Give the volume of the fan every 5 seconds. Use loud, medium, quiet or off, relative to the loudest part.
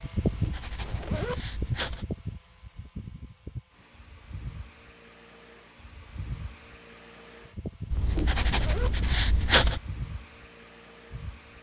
loud, medium, medium.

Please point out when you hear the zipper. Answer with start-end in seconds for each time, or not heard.
0.8-1.4, 8.4-8.9.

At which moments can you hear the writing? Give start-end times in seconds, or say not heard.
0.1-2.0, 7.9-9.8.